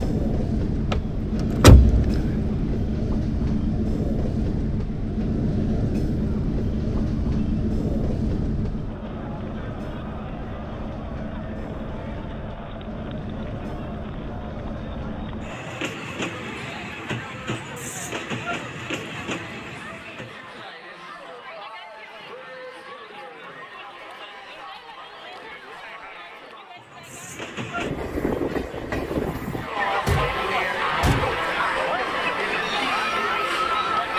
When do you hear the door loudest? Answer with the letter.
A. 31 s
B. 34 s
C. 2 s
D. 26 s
C.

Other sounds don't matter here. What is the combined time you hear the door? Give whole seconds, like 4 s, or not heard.
3 s.